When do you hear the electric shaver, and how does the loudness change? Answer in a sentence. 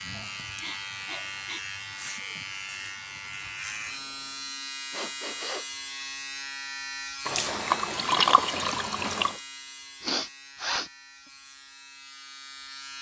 You can hear the electric shaver from 0.0 to 12.9 s, getting quieter.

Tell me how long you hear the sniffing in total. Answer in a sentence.
You can hear the sniffing for 3 seconds altogether.